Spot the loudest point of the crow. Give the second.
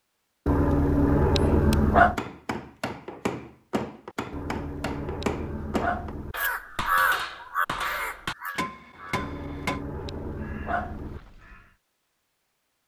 7 s.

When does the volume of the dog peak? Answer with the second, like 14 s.
2 s.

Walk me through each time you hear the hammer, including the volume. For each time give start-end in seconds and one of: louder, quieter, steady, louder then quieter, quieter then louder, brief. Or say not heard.
1.4-9.8 steady.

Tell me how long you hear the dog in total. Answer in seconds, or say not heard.
6 s.